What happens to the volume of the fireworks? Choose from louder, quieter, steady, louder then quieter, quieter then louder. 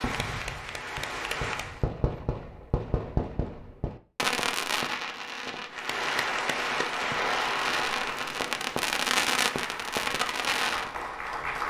louder.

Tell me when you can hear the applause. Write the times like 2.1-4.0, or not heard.
0.0-1.9, 5.7-11.6.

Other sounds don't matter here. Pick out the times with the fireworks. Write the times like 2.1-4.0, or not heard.
0.0-10.9.